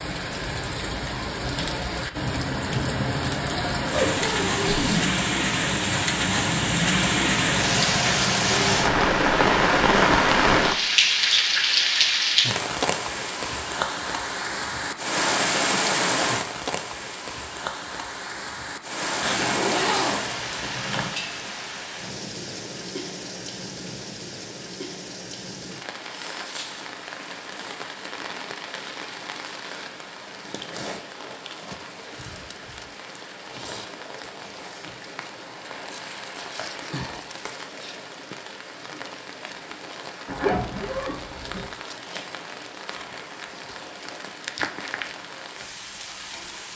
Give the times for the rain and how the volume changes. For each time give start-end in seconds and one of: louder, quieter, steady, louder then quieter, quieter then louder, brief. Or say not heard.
0.0-46.7 quieter.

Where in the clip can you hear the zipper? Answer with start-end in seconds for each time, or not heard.
3.9-5.2, 19.2-21.1, 40.2-41.6.